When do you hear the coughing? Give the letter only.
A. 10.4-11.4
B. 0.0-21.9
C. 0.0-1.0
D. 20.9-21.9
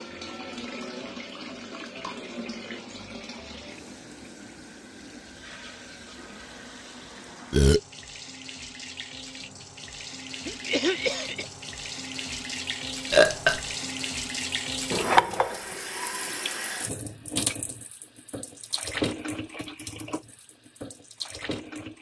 A.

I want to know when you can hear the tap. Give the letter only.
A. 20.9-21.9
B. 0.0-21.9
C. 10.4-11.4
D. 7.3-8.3
B.